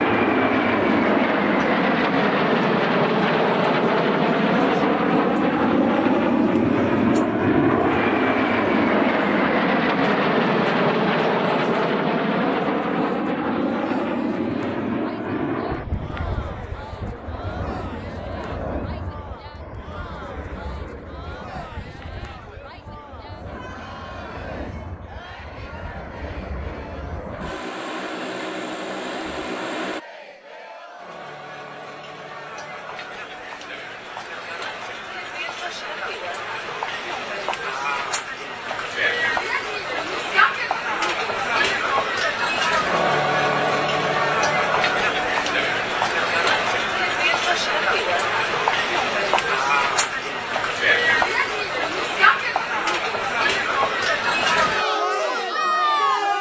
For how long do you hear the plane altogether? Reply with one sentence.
You can hear the plane for 30 seconds altogether.